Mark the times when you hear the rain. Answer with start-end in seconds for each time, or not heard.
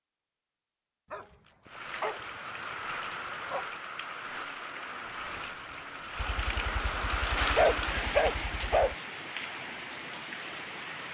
1.6-11.0.